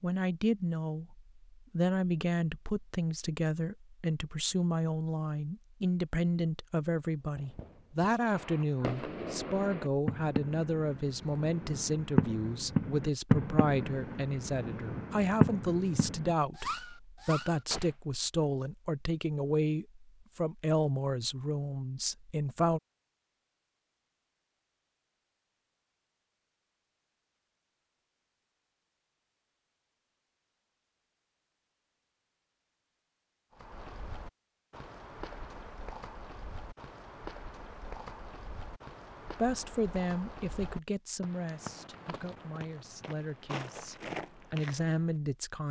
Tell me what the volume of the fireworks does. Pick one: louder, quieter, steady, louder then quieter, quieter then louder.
louder then quieter.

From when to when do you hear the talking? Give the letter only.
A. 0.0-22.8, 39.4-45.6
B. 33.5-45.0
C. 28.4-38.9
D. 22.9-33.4
A.